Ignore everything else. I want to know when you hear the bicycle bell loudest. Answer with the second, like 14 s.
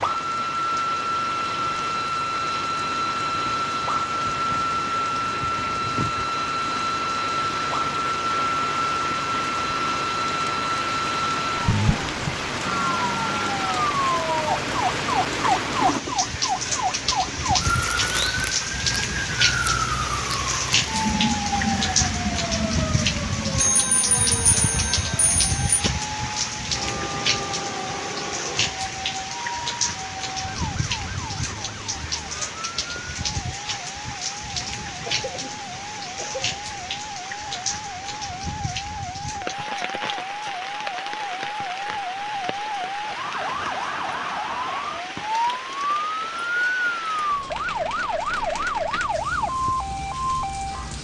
24 s.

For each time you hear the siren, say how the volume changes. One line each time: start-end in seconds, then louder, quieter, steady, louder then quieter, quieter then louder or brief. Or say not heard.
0.0-50.9 quieter then louder.